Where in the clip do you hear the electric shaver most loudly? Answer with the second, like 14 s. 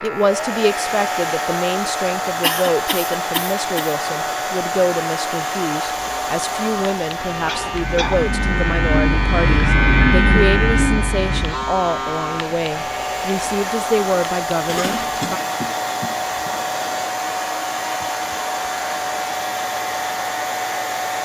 10 s.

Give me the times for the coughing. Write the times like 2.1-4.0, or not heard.
2.4-4.0, 7.5-8.2, 14.7-17.1.